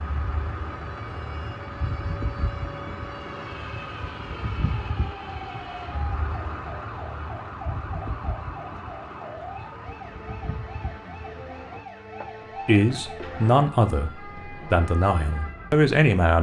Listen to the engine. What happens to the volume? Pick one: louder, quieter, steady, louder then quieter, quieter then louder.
quieter.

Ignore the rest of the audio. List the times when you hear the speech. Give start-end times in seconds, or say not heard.
12.7-16.3.